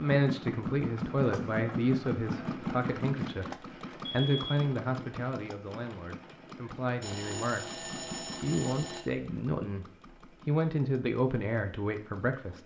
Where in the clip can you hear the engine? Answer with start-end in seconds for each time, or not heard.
0.0-12.6.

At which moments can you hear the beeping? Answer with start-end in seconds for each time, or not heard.
4.0-4.7, 7.0-9.1.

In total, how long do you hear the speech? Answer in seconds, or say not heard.
12 s.